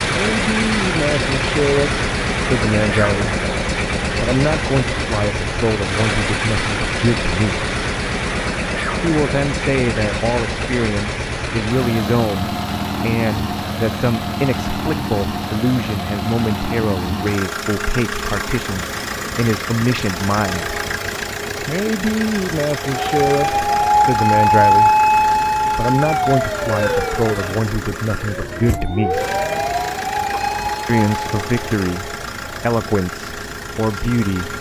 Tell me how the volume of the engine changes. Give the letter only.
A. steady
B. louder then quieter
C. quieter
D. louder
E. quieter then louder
C.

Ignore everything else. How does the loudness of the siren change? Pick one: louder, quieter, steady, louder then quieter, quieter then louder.
quieter.